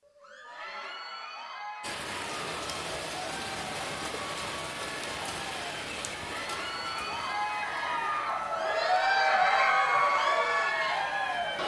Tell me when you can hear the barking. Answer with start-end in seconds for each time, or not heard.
not heard.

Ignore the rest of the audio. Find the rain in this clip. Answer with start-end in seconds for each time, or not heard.
1.8-11.6.